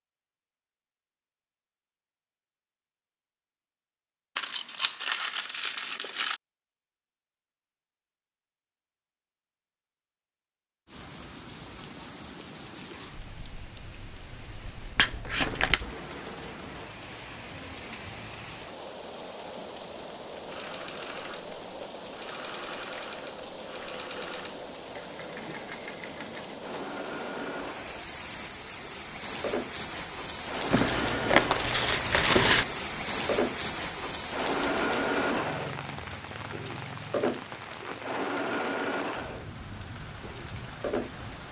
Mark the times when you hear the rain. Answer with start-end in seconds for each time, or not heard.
10.8-41.4.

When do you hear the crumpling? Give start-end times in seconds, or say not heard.
4.3-6.4, 14.9-15.8, 30.7-32.6.